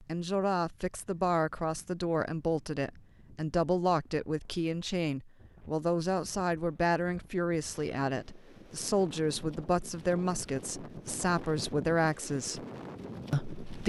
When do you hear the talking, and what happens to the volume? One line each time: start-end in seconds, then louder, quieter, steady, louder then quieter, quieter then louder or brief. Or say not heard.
0.0-12.7 steady
13.3-13.8 brief.